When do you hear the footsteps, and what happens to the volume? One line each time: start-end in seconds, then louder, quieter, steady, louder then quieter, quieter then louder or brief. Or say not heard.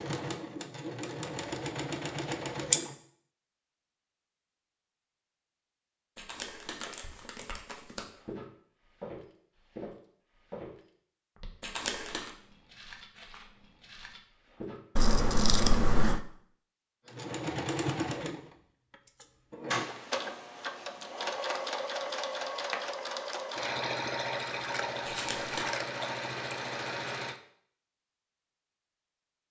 7.0-14.8 quieter.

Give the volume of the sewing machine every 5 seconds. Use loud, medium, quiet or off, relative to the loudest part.
loud, off, off, loud, loud, loud.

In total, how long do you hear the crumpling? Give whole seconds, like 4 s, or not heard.
3 s.